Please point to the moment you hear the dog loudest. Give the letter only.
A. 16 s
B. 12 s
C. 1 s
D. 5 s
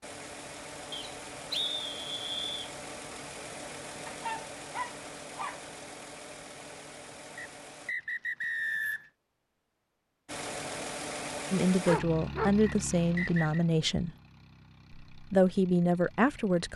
B.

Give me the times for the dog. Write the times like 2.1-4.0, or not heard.
4.0-5.6, 11.8-13.4.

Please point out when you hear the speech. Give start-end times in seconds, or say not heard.
11.5-14.1, 15.1-16.7.